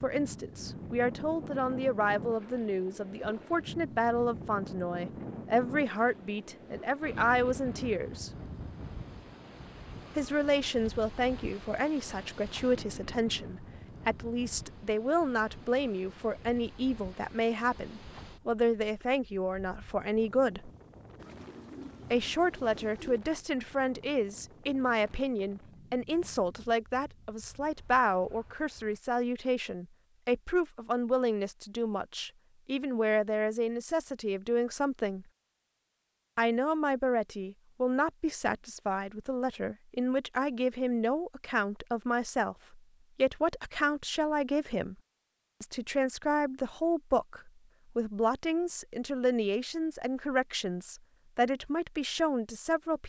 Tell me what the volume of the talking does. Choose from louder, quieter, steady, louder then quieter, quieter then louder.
steady.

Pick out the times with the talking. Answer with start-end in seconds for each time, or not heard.
0.0-8.3, 10.2-20.7, 22.1-35.2, 36.4-45.0, 45.6-53.0.